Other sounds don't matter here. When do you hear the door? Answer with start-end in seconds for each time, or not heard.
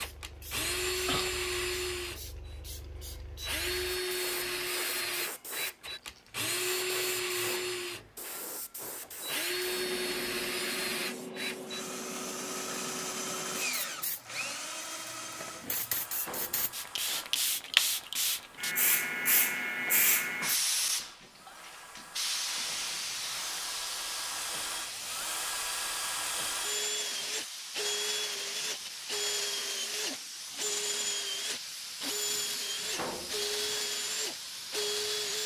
7.3-9.2, 16.1-17.3, 32.8-33.8.